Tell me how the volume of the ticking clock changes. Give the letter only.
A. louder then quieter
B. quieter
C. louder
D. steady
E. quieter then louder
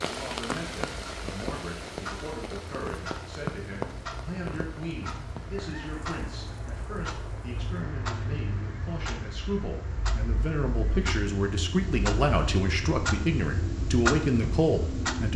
C.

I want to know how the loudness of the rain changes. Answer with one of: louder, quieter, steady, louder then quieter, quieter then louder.
quieter.